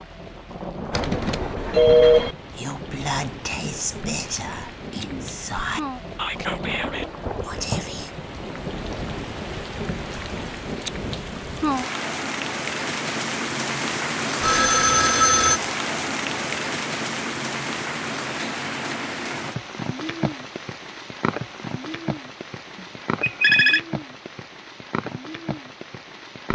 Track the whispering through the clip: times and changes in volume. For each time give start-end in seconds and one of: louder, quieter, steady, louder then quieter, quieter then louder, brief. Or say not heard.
2.5-8.1 steady.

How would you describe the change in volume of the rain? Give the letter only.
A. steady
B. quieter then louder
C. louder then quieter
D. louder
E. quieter
C.